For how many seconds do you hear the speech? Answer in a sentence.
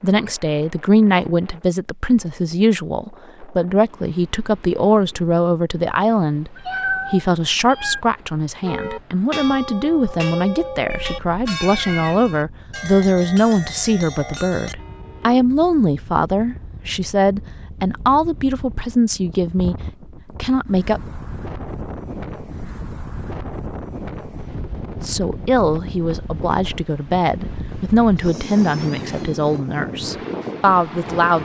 The speech can be heard for 27 seconds in total.